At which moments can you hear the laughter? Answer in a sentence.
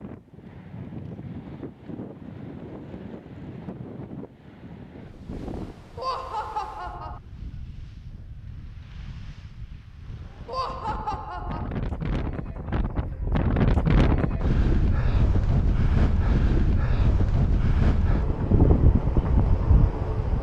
You can hear the laughter from 6.0 to 7.2 s and from 10.4 to 11.7 s.